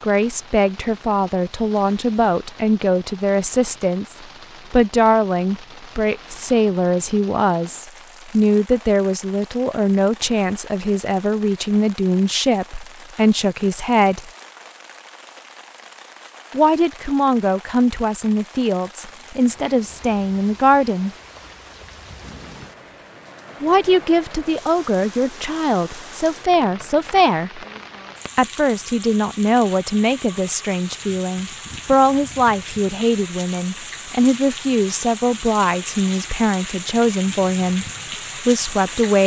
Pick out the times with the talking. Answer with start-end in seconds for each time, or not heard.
0.0-14.3, 16.5-21.1, 23.6-27.6, 28.4-37.9, 38.5-39.2.